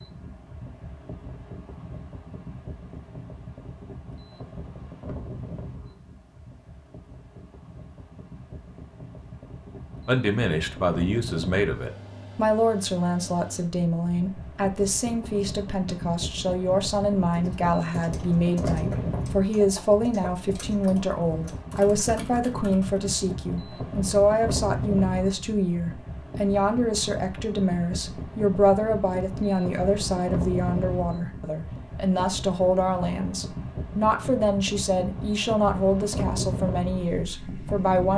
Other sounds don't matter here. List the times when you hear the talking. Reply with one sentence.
You can hear the talking from 10.1 to 38.1 s.